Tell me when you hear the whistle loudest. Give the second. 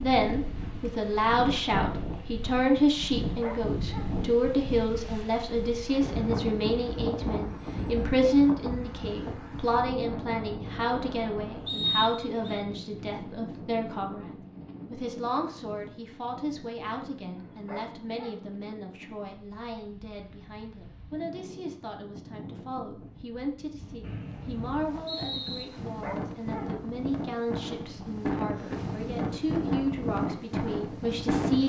12 s.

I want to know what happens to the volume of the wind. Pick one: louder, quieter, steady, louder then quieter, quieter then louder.
quieter then louder.